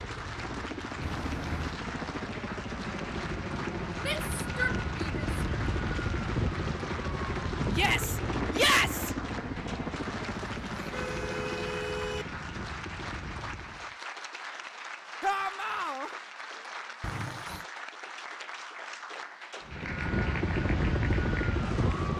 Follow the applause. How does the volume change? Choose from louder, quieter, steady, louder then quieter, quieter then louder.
steady.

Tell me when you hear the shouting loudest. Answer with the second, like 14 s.
9 s.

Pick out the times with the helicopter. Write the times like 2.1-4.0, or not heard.
0.0-13.9, 19.6-22.1.